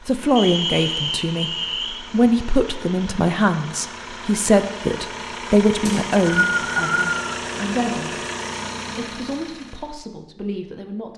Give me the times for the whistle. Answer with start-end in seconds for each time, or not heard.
0.3-2.0, 5.8-7.2.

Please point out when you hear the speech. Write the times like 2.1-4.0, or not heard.
0.1-8.2, 8.9-11.1.